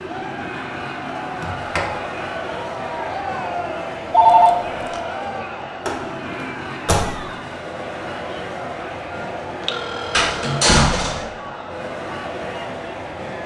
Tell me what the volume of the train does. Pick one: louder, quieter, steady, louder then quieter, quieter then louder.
steady.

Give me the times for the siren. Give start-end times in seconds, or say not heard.
not heard.